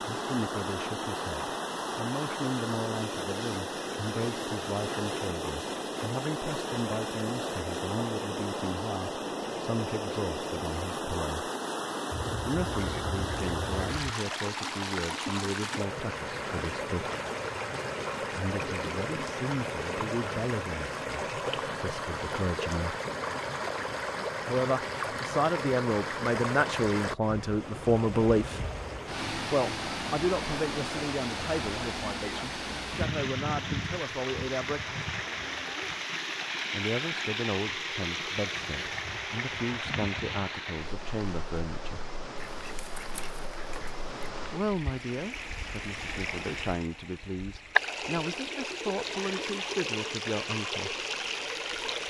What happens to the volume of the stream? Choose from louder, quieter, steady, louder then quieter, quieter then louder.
steady.